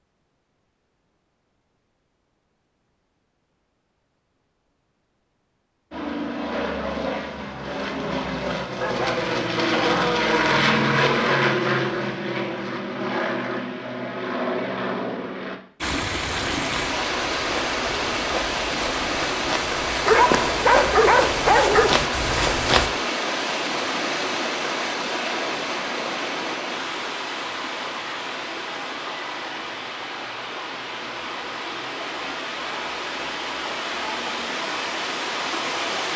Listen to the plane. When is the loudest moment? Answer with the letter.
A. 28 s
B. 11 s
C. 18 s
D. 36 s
B.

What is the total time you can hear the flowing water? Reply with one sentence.
You can hear the flowing water for 20 seconds altogether.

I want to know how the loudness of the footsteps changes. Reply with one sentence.
The loudness of the footsteps goes up.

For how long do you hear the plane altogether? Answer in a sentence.
You can hear the plane for 10 seconds altogether.